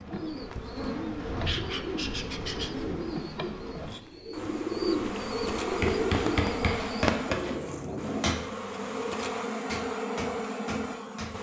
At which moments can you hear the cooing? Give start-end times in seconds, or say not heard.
0.1-8.2.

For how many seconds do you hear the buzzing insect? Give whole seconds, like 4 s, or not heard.
11 s.